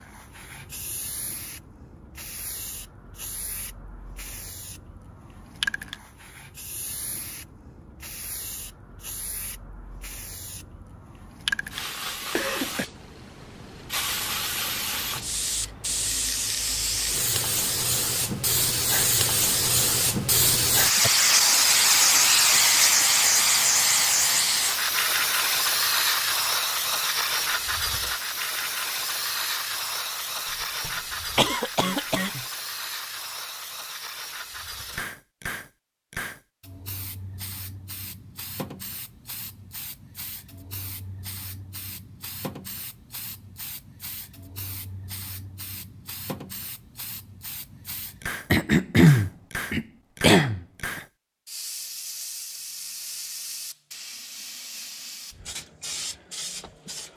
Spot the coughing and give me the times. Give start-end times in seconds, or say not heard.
12.1-12.8, 30.8-32.5, 48.5-51.0.